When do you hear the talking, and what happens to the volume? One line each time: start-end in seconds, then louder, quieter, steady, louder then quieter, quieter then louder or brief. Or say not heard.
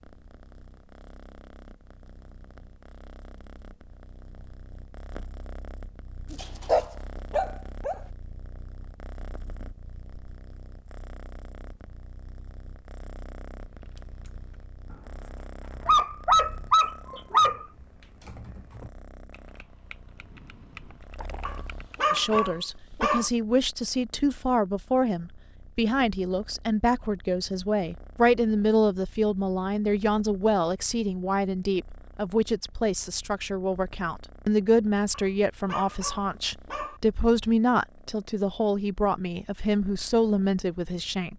22.1-41.3 steady.